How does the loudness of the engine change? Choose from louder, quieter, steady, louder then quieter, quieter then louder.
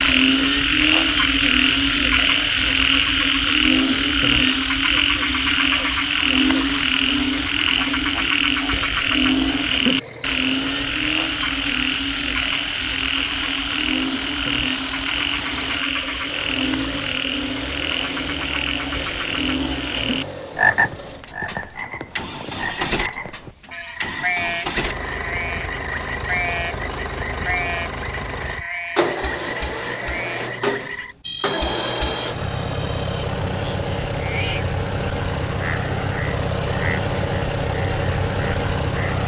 louder.